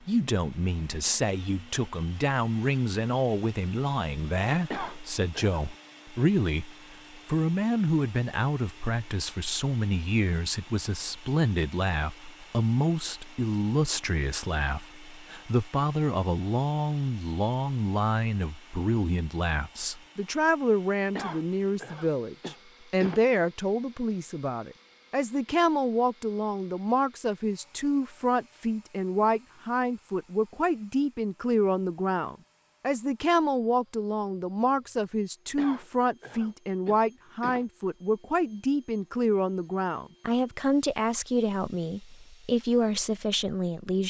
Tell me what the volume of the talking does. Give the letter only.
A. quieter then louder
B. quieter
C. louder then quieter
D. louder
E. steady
E.